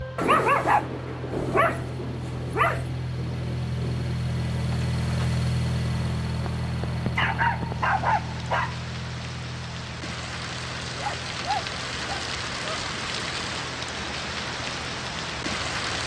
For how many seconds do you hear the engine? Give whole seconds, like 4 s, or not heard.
16 s.